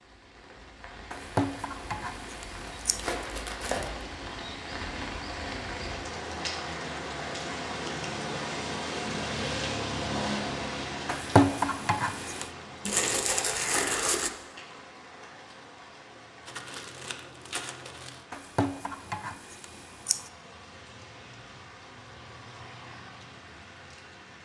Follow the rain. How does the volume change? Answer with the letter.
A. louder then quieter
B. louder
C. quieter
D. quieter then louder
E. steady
A.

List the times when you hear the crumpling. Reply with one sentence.
You can hear the crumpling from 2.9 to 4.0 s, from 12.8 to 14.3 s and from 16.4 to 18.2 s.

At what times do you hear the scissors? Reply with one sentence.
The scissors can be heard from 1.1 to 3.0 s, from 11.1 to 12.5 s and from 18.3 to 20.3 s.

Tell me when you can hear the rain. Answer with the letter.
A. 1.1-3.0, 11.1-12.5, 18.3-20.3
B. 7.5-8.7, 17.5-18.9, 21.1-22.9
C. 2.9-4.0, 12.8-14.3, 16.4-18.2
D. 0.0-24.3
D.